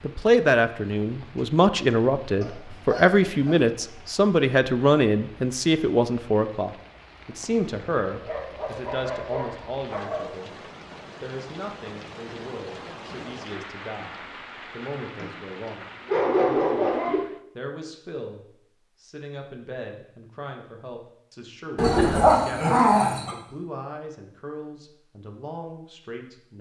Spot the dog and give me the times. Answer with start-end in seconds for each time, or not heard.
2.4-3.6, 8.1-10.3, 16.1-17.2, 21.8-23.3.